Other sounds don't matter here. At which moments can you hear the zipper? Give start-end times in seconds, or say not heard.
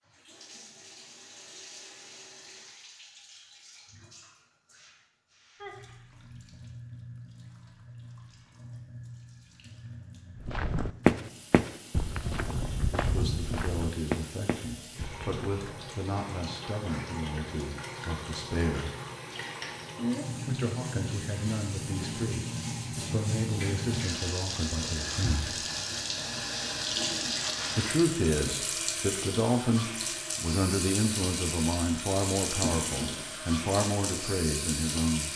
not heard.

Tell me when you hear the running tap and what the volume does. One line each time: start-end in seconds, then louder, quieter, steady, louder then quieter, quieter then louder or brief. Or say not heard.
0.0-35.3 louder.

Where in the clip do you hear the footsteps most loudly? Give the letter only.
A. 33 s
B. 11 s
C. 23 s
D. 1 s
B.